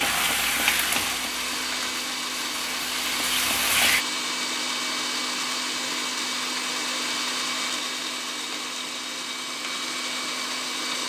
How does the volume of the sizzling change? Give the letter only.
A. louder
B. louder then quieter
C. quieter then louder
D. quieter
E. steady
C.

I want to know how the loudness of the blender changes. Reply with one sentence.
The volume of the blender stays about the same.